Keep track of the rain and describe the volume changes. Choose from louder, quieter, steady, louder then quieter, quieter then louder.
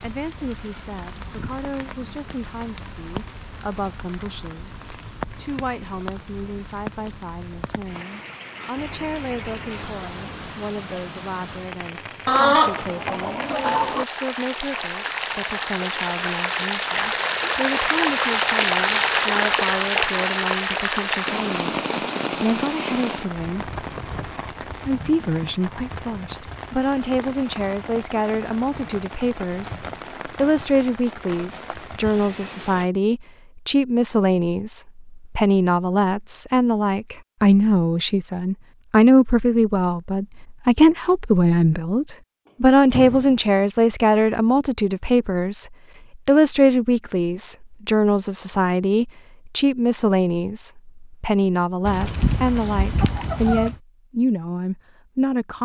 louder then quieter.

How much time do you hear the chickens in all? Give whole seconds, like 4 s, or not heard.
4 s.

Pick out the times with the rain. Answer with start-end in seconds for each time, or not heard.
0.0-32.9.